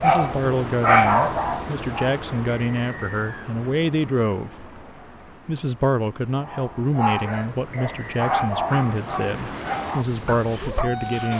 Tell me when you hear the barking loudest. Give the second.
1 s.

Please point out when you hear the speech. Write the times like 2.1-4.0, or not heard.
0.0-4.8, 5.5-11.3.